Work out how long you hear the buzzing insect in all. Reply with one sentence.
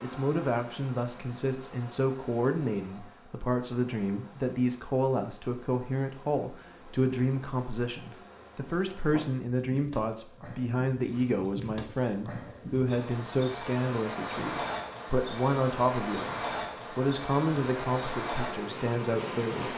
You can hear the buzzing insect for 20 seconds altogether.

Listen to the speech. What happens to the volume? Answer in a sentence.
The loudness of the speech stays about the same.